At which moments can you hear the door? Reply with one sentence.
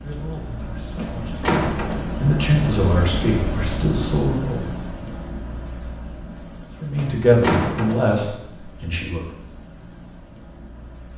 The door can be heard from 0.9 to 2.1 s and from 7.0 to 8.1 s.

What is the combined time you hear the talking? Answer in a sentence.
You can hear the talking for 7 seconds altogether.